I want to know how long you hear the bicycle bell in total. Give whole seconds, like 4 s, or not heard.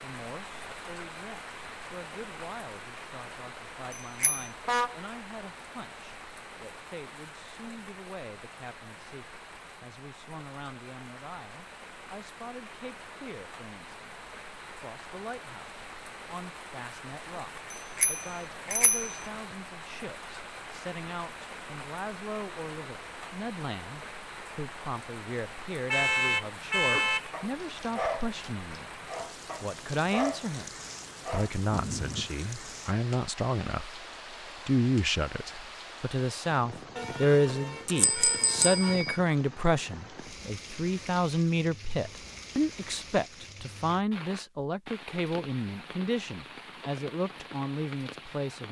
4 s.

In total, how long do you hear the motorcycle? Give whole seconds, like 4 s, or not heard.
not heard.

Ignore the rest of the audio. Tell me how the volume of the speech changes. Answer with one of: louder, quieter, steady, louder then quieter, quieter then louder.
louder.